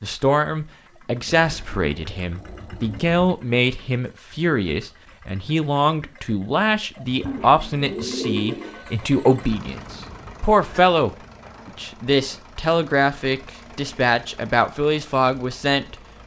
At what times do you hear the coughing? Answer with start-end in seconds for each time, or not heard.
not heard.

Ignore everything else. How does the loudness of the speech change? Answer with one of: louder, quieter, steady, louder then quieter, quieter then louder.
steady.